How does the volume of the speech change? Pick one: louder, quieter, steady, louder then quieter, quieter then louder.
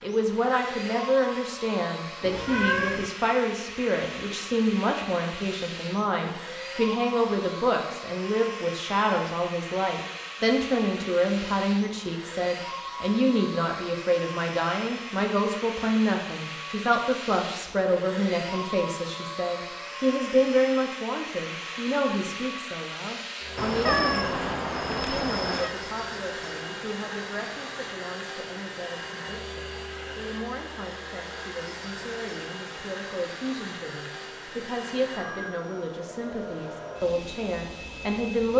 quieter.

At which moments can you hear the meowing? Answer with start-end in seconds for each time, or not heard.
2.2-3.1, 23.6-25.8.